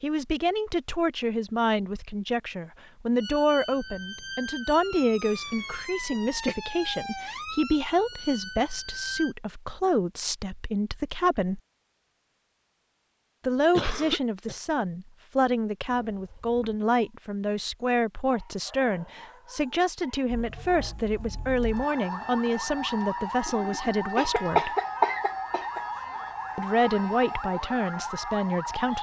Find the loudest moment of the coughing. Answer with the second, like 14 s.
25 s.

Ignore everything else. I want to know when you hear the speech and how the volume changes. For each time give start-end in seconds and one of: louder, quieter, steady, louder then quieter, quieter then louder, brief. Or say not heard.
0.0-11.6 steady
13.4-24.7 steady
26.6-28.9 brief.